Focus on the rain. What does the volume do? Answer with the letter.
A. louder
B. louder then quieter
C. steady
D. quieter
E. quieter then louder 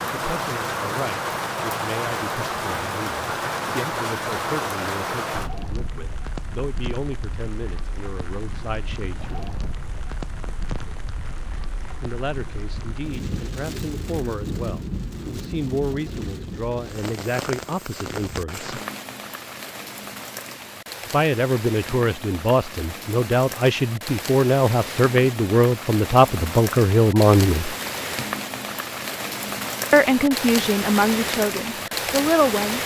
E.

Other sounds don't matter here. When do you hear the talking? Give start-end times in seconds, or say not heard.
0.1-9.5, 12.0-18.8, 21.1-27.8, 29.9-32.8.